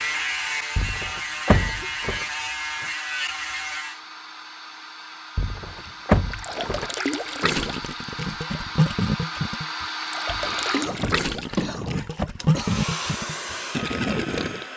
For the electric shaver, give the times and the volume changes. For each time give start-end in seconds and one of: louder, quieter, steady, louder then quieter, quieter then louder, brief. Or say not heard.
0.0-4.0 steady.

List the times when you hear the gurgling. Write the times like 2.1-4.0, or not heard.
5.7-14.7.